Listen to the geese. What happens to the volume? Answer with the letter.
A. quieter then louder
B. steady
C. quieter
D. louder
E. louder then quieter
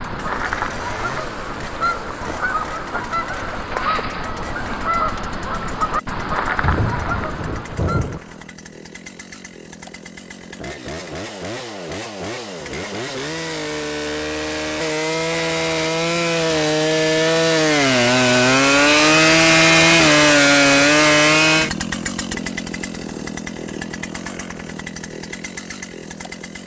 B.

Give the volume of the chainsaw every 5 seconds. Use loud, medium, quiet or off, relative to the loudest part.
quiet, quiet, quiet, loud, loud, quiet.